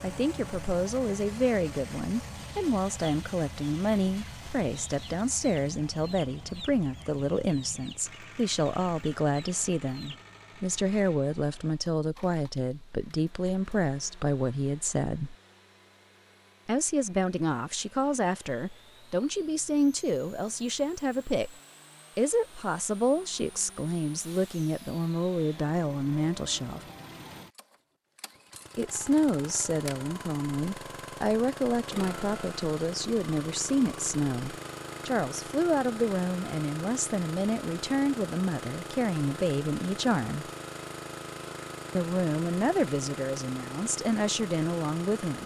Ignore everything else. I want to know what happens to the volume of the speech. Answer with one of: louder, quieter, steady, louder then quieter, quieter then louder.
steady.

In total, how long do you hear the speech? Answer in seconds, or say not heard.
40 s.